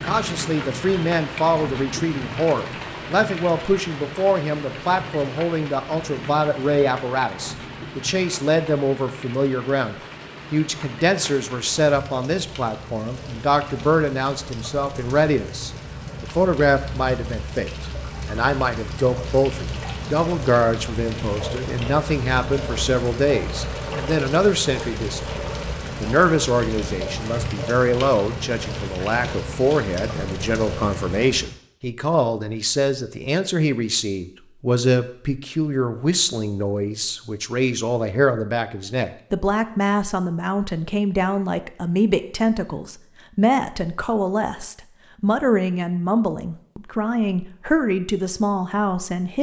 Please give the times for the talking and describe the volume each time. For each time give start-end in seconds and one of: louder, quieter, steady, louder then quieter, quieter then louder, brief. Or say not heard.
0.0-49.3 steady.